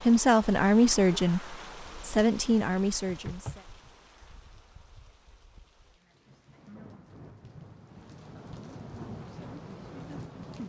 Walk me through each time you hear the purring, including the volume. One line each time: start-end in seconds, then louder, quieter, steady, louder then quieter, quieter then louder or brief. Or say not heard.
not heard.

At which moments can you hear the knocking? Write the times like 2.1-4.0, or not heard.
3.0-3.9.